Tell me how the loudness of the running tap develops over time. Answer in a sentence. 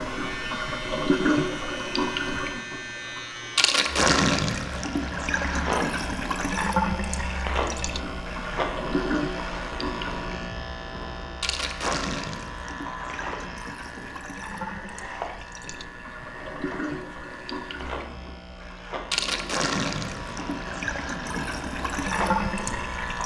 The volume of the running tap goes down, then up.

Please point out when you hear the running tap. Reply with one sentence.
You can hear the running tap from 0.0 to 23.2 s.